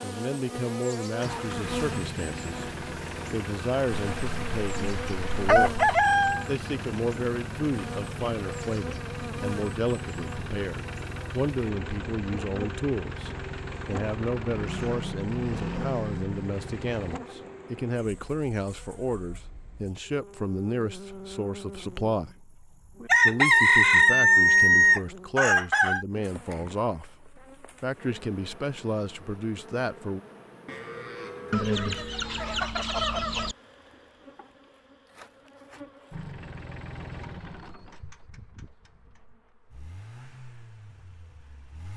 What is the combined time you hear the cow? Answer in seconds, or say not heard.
2 s.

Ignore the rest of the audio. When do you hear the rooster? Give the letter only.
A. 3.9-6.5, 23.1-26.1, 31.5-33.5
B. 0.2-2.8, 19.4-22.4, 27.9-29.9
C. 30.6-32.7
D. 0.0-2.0
A.